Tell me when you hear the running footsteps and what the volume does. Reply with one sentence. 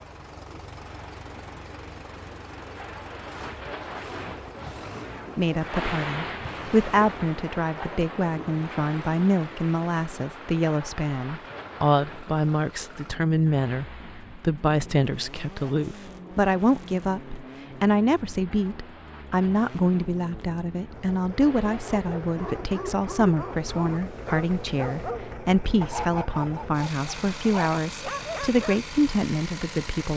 You can't hear the running footsteps here.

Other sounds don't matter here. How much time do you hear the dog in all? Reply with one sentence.
You can hear the dog for 7 seconds altogether.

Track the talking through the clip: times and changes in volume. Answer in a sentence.
You can hear the talking from 5.3 to 30.1 s, at a steady volume.